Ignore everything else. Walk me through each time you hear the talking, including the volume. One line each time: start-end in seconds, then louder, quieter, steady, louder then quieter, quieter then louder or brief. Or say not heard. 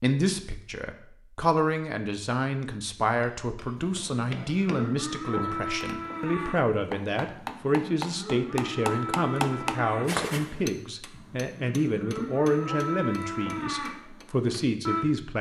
0.0-15.3 steady.